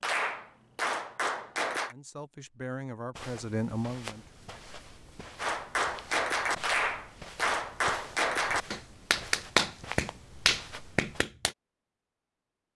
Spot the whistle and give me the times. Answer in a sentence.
You can't hear the whistle here.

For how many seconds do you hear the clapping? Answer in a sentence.
You can hear the clapping for 8 seconds altogether.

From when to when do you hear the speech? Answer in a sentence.
You can hear the speech from 1.9 to 4.3 s.